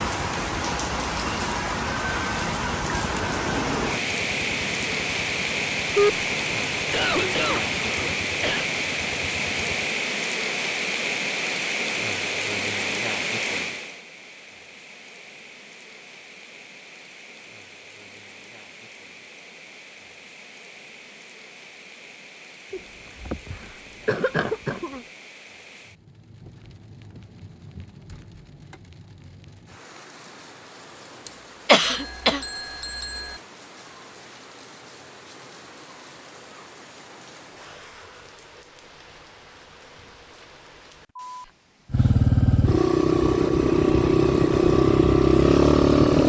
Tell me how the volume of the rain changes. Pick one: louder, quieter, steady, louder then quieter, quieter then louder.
quieter.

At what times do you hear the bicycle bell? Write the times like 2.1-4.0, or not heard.
31.8-33.4.